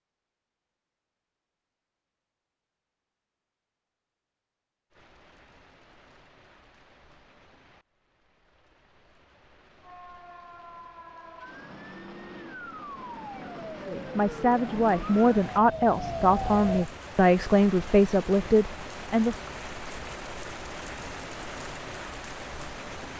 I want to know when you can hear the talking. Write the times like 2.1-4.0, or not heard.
13.8-19.4.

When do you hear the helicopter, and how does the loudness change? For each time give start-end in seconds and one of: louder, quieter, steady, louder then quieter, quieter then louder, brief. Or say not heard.
not heard.